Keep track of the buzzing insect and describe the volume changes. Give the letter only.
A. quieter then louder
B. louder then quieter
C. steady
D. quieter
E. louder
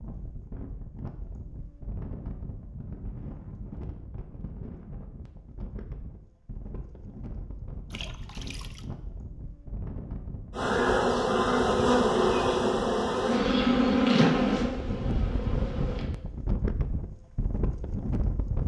D.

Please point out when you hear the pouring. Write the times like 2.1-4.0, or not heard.
7.9-8.8.